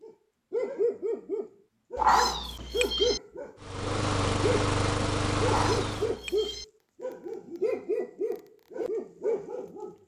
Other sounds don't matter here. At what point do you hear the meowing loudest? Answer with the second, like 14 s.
2 s.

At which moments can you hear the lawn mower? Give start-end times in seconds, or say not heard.
3.6-6.2.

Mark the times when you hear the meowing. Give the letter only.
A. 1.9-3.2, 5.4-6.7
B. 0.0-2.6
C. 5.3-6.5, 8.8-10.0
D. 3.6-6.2
A.